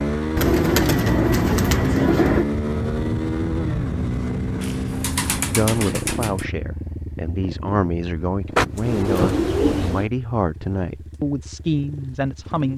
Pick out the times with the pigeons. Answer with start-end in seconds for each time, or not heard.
0.3-2.5, 4.6-6.5, 8.6-10.1.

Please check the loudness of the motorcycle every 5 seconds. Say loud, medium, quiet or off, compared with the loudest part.
loud, medium, quiet.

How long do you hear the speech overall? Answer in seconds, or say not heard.
7 s.